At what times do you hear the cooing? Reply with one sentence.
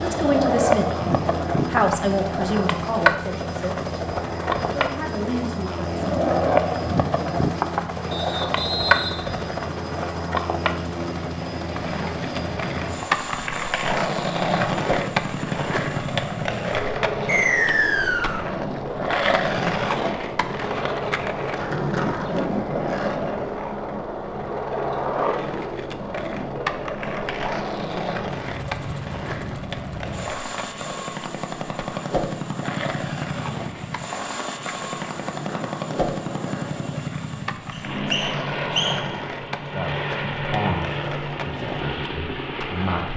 You can't hear the cooing here.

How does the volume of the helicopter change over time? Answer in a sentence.
The volume of the helicopter stays about the same.